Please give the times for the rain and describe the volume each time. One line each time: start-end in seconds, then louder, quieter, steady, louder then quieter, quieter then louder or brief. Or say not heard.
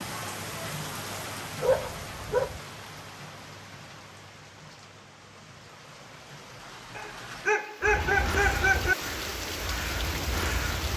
0.0-10.9 quieter then louder.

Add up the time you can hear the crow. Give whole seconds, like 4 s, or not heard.
3 s.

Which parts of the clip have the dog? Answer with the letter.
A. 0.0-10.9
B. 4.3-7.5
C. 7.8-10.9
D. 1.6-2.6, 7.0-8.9
D.